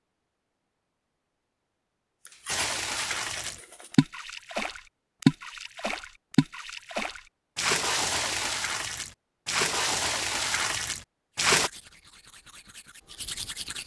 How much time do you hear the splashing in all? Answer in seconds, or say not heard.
9 s.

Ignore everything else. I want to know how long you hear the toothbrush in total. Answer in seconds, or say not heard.
4 s.